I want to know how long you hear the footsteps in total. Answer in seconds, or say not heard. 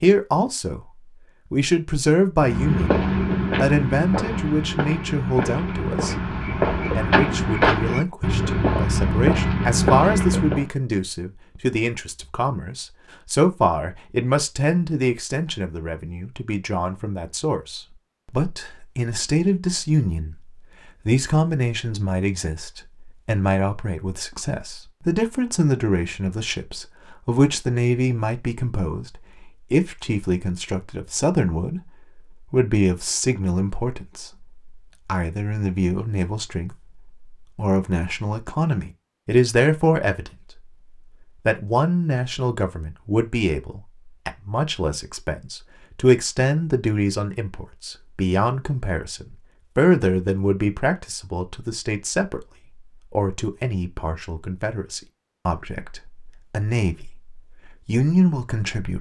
8 s.